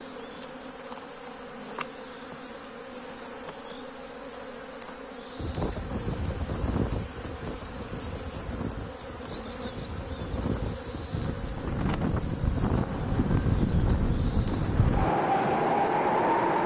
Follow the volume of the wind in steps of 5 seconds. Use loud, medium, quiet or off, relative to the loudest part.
off, quiet, medium, loud.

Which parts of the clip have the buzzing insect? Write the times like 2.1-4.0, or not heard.
0.0-16.6.